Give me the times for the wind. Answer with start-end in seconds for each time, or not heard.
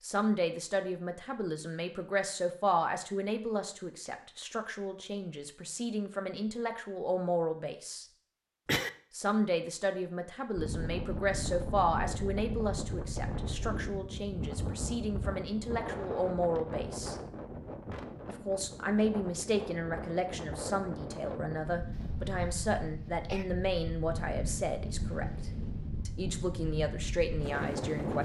10.6-28.1.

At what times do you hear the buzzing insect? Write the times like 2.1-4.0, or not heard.
not heard.